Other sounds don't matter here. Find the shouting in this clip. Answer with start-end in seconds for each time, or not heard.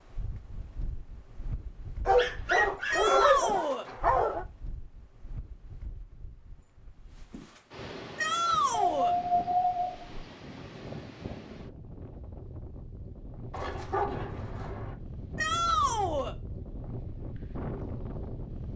2.9-3.9, 8.2-9.2, 15.3-16.4.